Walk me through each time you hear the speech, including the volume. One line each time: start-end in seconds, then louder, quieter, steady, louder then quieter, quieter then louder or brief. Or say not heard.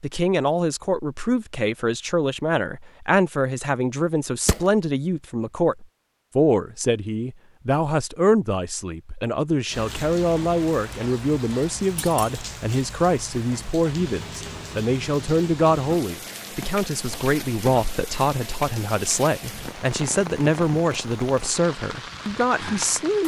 0.0-23.2 steady.